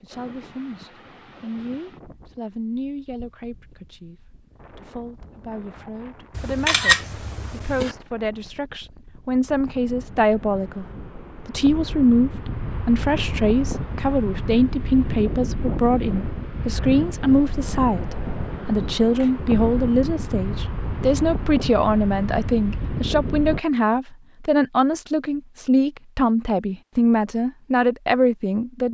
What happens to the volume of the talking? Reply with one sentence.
The loudness of the talking goes up.